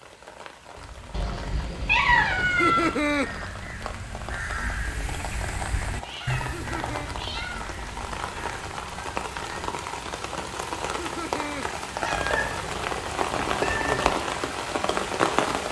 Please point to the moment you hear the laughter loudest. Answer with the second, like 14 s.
3 s.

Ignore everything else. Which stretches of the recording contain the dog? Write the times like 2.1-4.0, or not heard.
not heard.